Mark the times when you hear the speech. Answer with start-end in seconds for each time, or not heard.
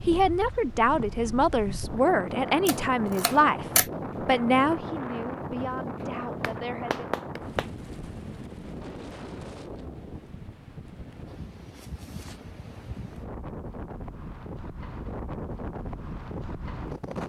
0.1-7.1.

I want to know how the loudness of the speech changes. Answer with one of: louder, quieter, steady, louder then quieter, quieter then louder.
quieter.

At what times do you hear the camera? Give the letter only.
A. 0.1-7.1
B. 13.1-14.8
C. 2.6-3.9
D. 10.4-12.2
C.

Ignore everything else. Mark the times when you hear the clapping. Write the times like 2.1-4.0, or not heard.
6.0-7.7.